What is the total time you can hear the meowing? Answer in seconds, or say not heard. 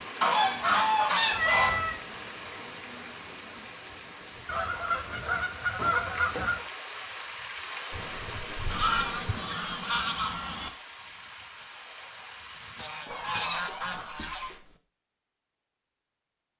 4 s.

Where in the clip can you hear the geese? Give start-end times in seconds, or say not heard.
0.2-1.9, 4.5-6.6, 8.7-10.7, 12.8-14.5.